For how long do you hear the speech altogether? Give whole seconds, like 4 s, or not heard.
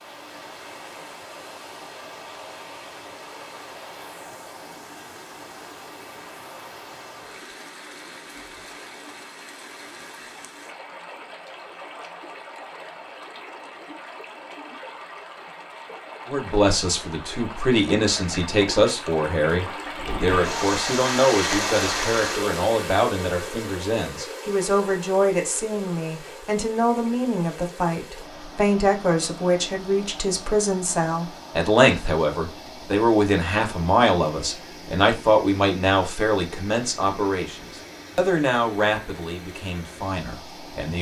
25 s.